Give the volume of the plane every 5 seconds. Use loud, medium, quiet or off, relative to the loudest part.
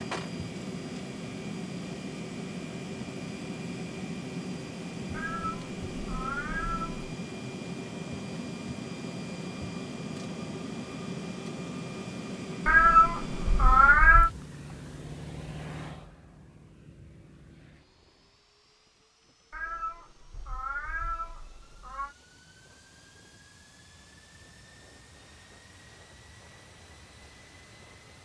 loud, loud, loud, medium, quiet, quiet.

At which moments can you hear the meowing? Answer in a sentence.
The meowing can be heard from 5.1 to 7.1 s, from 12.7 to 14.3 s and from 19.5 to 22.1 s.